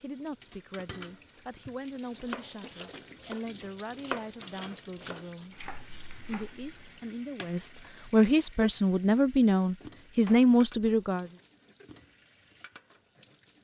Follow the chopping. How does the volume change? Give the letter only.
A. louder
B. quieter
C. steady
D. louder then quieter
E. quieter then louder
D.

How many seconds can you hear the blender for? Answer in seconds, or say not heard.
not heard.